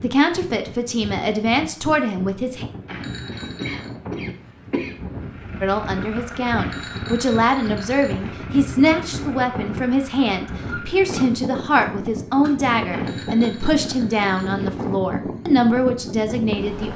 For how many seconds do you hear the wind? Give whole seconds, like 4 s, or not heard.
17 s.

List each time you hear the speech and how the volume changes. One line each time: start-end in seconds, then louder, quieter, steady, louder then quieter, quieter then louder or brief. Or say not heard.
0.0-2.6 brief
5.6-16.9 steady.